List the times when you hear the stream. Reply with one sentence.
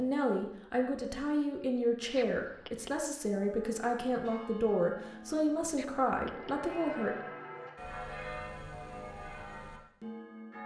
You can't hear the stream here.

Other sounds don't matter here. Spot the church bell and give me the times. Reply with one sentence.
The church bell can be heard from 3.2 to 10.6 s.